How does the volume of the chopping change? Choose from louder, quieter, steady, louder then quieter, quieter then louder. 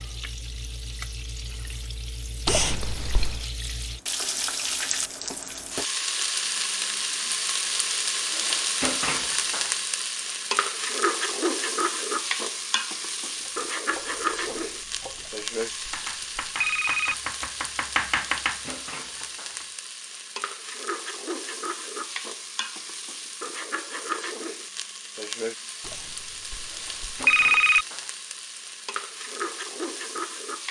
louder.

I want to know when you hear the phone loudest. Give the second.
27 s.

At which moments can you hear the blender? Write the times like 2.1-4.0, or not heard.
not heard.